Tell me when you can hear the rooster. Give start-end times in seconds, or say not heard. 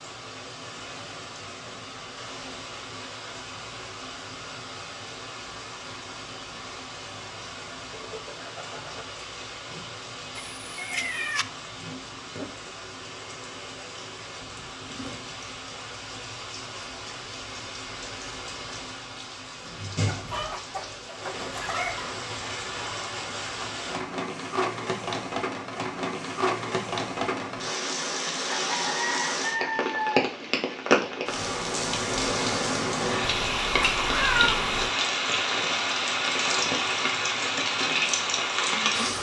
7.9-9.1, 20.1-22.1, 28.5-30.1.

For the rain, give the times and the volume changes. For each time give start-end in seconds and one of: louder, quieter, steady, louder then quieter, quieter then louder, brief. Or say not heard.
0.0-39.1 louder.